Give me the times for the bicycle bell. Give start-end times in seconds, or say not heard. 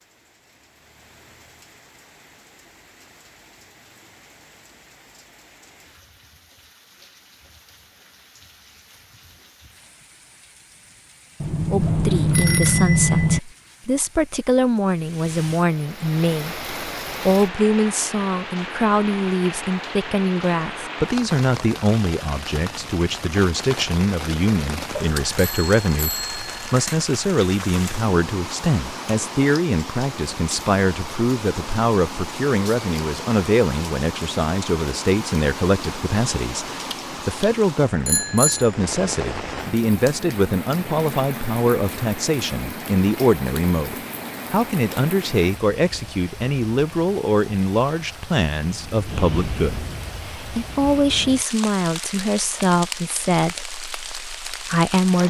11.4-13.4, 24.9-26.9, 38.0-38.7.